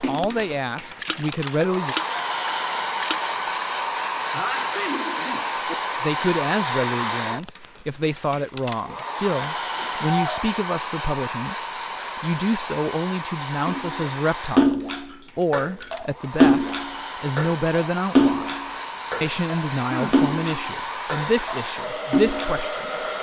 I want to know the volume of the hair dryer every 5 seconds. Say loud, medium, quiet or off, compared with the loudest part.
loud, loud, loud, medium, loud.